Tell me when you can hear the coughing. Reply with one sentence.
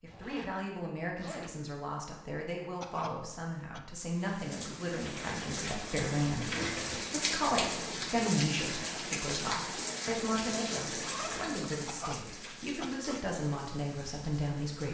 The coughing can be heard from 2.8 to 3.8 s and from 11.8 to 13.3 s.